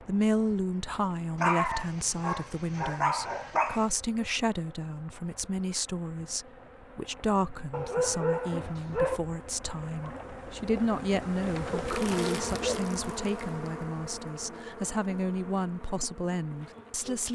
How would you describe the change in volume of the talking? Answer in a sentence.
The loudness of the talking stays about the same.